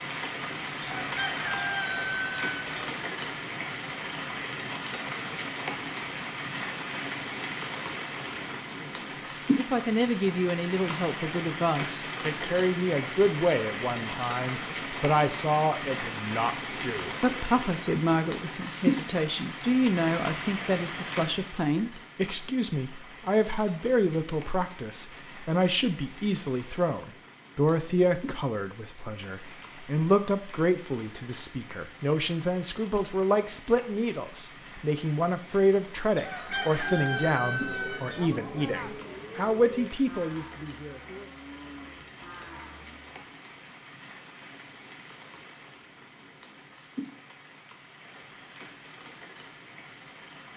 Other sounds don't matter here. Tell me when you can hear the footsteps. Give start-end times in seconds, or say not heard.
not heard.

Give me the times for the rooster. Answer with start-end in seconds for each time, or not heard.
0.8-2.9, 36.1-38.2.